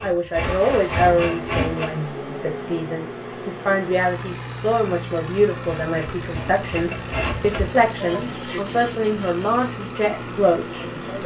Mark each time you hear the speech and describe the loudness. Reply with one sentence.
The speech can be heard from 0.0 to 11.2 s, at a steady volume.